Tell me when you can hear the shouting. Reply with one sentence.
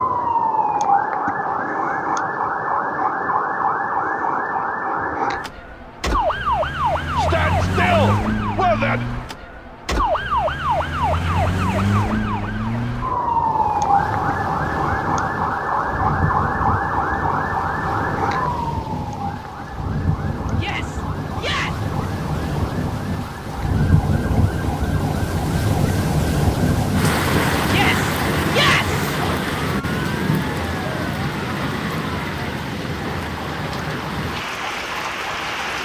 You can hear the shouting from 7.2 to 9.1 s, from 20.6 to 21.8 s and from 27.6 to 29.1 s.